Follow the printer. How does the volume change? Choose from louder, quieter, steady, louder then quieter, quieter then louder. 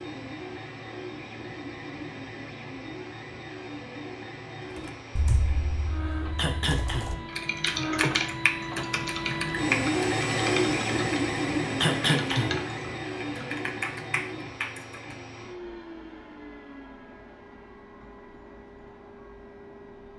louder then quieter.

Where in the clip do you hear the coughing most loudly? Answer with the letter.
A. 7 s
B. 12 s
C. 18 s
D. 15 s
B.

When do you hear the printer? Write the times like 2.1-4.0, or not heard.
0.0-20.1.